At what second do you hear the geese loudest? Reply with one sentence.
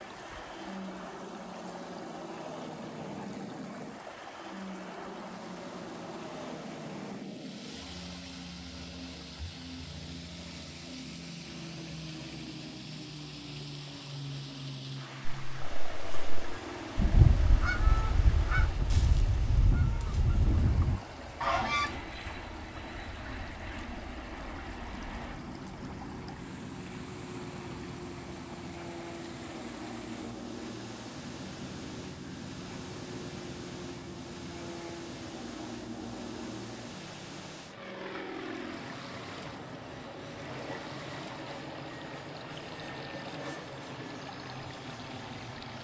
The volume of the geese peaks at 17 seconds.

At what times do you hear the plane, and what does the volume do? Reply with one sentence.
The plane can be heard from 0.0 to 45.7 s, at a steady volume.